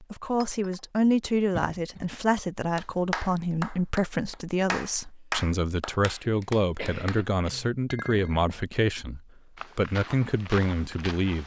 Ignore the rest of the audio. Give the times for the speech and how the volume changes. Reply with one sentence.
You can hear the speech from 0.0 to 11.4 s, at a steady volume.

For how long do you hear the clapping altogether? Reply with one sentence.
You can hear the clapping for 5 seconds altogether.